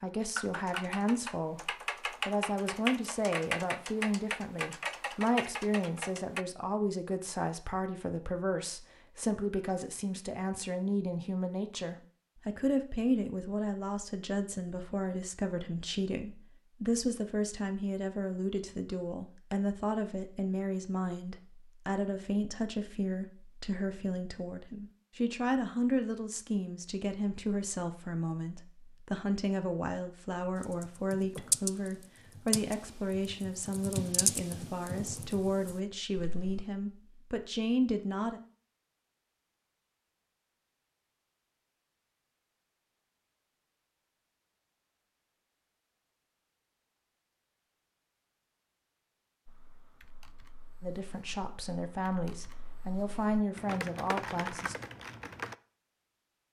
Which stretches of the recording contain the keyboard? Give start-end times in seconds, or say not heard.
0.3-6.5, 30.6-36.6, 49.5-55.5.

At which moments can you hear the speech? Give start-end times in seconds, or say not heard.
0.0-38.4, 50.8-54.8.